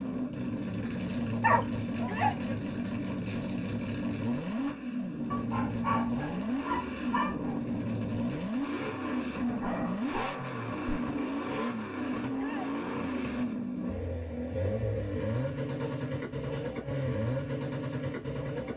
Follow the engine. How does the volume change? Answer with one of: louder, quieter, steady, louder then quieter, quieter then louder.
steady.